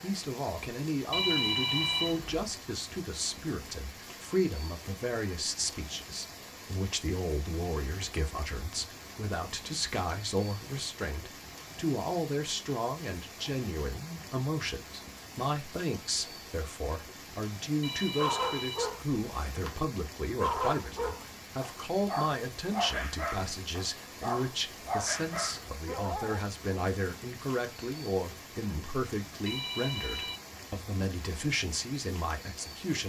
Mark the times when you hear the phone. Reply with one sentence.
The phone can be heard from 1.1 to 2.5 s, from 17.8 to 19.8 s and from 29.4 to 30.4 s.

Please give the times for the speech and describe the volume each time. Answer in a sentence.
The speech can be heard from 0.0 to 33.0 s, at a steady volume.